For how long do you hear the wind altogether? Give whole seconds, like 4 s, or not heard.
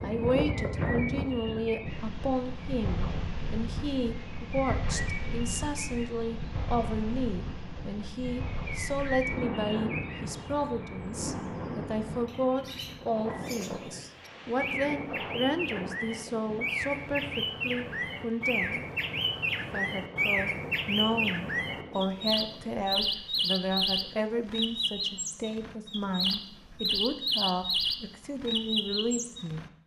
24 s.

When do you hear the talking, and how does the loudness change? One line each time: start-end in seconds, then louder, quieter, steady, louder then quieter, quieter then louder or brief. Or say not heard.
0.0-18.9 steady
19.6-29.6 steady.